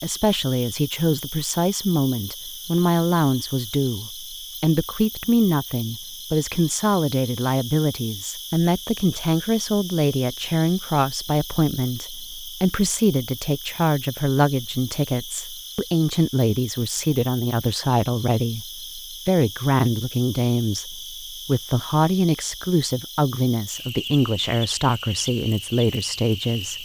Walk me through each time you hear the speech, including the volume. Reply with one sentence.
The speech can be heard from 0.0 to 26.7 s, at a steady volume.